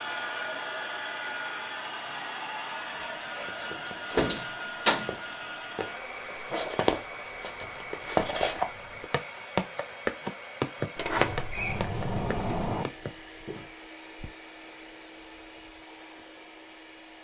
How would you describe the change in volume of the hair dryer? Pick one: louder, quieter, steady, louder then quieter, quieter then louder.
quieter.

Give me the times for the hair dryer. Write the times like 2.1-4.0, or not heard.
0.0-17.1.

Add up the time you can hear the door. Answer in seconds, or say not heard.
3 s.